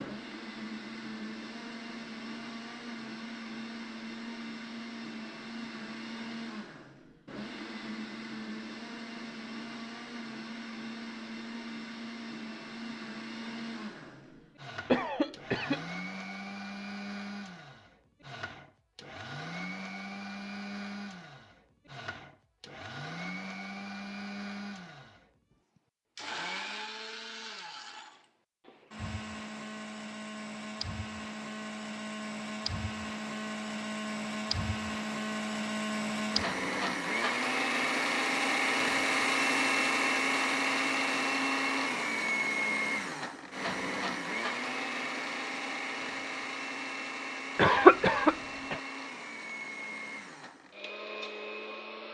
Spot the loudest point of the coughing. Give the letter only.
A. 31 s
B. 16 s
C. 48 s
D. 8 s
C.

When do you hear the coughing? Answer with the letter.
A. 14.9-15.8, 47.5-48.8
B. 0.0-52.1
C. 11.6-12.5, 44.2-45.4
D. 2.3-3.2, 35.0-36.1
A.